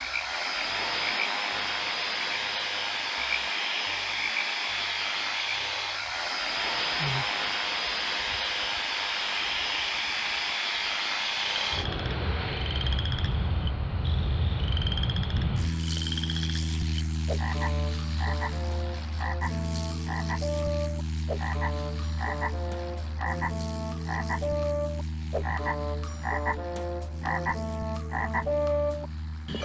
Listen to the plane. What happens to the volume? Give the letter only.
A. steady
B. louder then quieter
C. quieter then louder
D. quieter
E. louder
D.